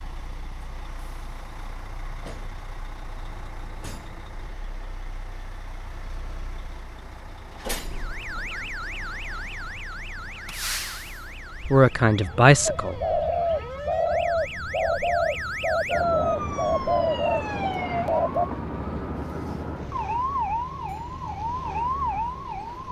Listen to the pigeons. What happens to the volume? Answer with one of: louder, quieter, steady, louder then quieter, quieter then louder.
steady.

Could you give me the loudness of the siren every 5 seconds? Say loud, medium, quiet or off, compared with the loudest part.
off, medium, medium, loud, loud.